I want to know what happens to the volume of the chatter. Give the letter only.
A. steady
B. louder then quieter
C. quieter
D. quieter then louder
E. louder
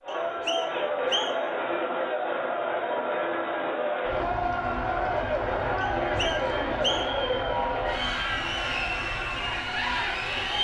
A.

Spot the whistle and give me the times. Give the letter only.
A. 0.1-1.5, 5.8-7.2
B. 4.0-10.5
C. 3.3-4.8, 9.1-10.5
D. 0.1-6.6
A.